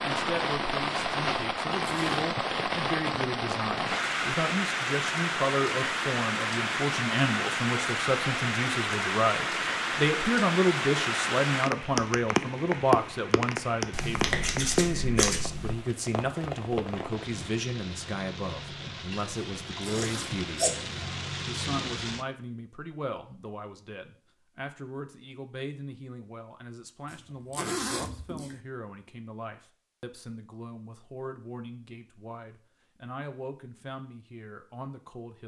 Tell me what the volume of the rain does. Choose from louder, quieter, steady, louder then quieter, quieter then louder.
quieter.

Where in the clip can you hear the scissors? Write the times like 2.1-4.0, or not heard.
13.9-15.8, 19.9-21.0.